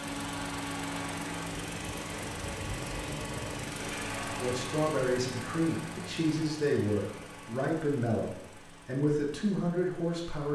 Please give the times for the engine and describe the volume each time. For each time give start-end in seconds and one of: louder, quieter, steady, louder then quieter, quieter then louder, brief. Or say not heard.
0.0-10.5 quieter.